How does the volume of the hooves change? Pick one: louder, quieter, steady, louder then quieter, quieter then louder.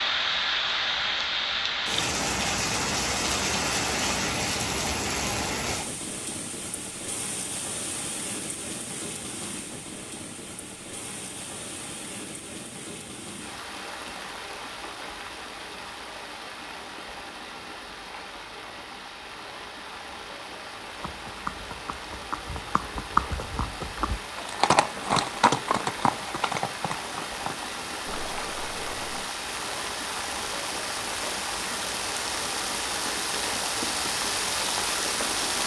louder then quieter.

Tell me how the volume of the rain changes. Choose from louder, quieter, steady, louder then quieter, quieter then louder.
quieter then louder.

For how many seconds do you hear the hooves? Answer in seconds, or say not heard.
8 s.